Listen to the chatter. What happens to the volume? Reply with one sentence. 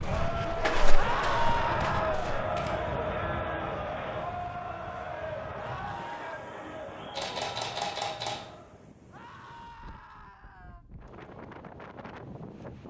The loudness of the chatter goes down.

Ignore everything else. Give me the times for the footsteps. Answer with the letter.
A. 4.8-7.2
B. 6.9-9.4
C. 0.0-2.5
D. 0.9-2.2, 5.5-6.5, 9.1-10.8
C.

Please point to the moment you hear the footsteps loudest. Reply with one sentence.
The loudest moment of the footsteps is at 1 second.